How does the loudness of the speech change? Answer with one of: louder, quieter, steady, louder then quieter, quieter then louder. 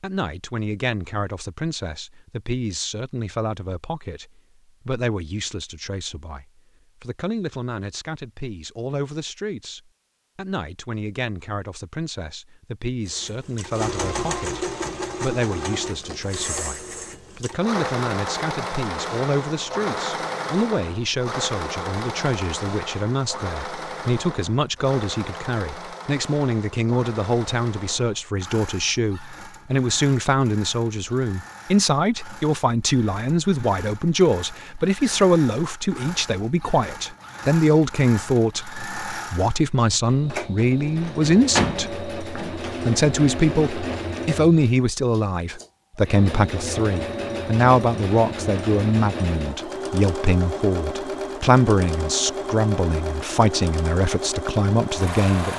louder.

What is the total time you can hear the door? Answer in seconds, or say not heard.
2 s.